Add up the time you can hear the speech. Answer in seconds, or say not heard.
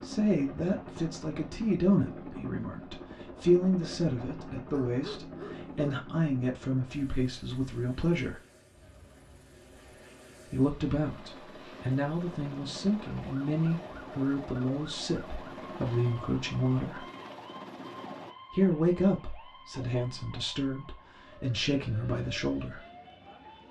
19 s.